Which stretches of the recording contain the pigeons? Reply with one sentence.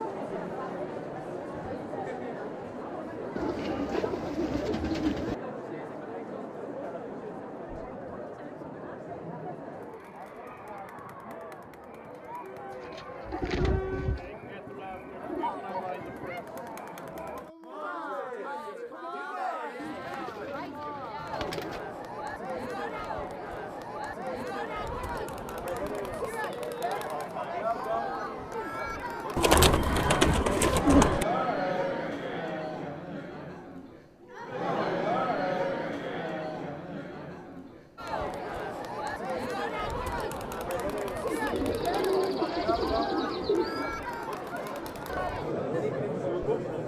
The pigeons can be heard from 3.4 to 5.3 s, from 12.7 to 15.6 s, from 19.8 to 21.8 s, from 29.4 to 31.2 s and from 41.2 to 44.0 s.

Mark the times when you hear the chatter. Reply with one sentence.
You can hear the chatter from 0.0 to 46.8 s.